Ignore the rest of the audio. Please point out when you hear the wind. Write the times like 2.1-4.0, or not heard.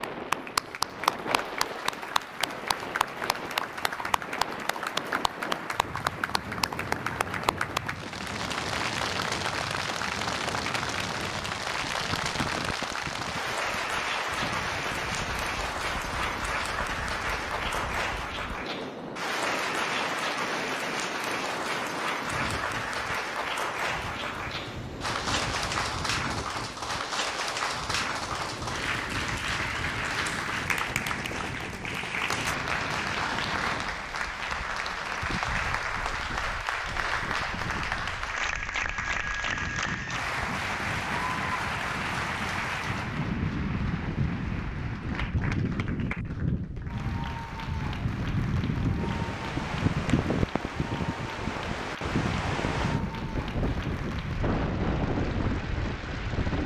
0.0-56.6.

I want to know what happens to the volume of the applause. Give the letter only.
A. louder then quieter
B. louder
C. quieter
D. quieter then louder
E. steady
C.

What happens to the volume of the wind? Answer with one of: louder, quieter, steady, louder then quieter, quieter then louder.
louder.